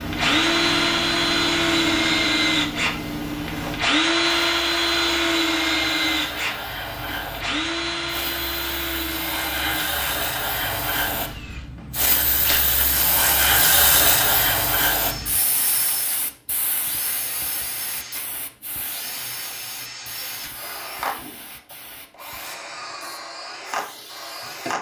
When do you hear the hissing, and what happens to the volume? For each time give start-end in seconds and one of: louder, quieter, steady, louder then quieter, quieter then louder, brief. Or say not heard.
0.0-24.7 louder then quieter.